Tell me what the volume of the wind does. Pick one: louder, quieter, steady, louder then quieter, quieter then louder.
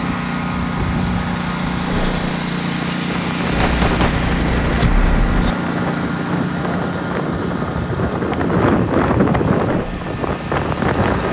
louder.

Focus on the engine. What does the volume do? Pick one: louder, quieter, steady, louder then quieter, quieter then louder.
quieter.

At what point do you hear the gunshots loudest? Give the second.
4 s.